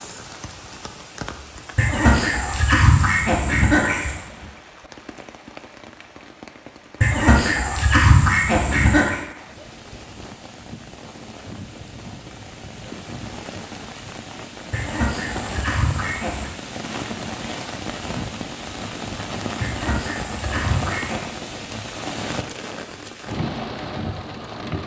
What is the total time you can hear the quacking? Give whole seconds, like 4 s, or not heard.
8 s.